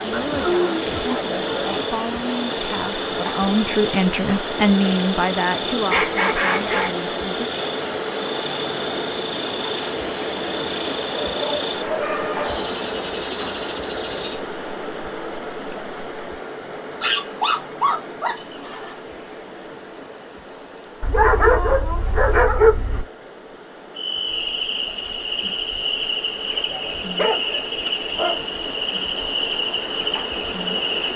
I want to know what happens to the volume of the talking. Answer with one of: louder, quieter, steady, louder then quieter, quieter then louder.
louder then quieter.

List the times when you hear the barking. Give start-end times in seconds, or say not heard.
0.1-1.6, 5.8-7.0, 11.1-12.8, 17.0-18.9, 21.0-23.1, 26.4-28.4.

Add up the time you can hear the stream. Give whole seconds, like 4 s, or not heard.
31 s.